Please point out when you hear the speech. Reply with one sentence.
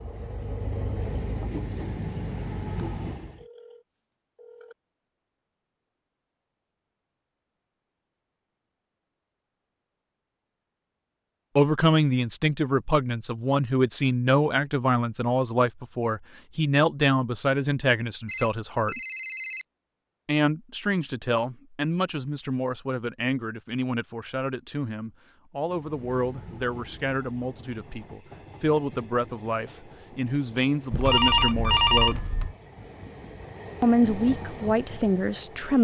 The speech can be heard from 11.6 to 19.0 s, from 20.2 to 32.2 s and from 33.8 to 35.8 s.